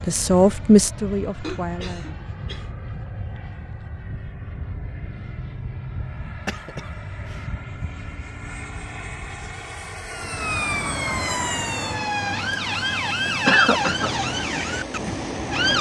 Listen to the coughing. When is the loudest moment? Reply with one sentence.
The volume of the coughing peaks at 14 seconds.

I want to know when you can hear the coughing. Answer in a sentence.
You can hear the coughing from 1.4 to 3.1 s, from 6.3 to 7.5 s and from 13.4 to 14.1 s.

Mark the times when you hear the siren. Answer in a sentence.
The siren can be heard from 10.1 to 15.7 s.